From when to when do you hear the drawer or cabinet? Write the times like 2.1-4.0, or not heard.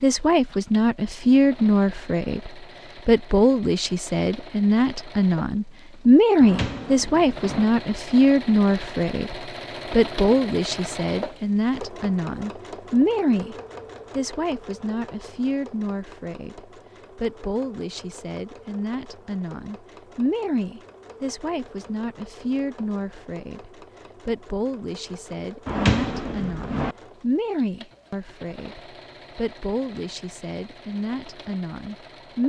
6.4-7.7, 25.6-26.9.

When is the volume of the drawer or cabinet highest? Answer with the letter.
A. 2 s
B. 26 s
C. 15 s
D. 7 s
B.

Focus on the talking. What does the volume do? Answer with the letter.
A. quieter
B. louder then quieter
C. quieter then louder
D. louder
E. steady
A.